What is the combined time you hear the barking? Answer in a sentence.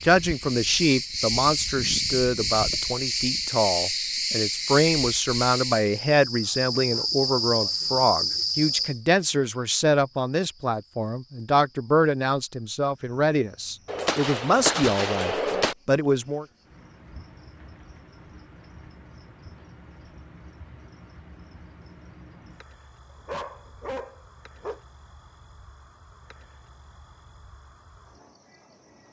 You can hear the barking for 2 seconds altogether.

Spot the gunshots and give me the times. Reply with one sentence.
You can hear the gunshots from 13.8 to 15.8 s.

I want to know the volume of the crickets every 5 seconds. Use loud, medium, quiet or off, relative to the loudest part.
loud, loud, quiet, quiet, quiet, quiet.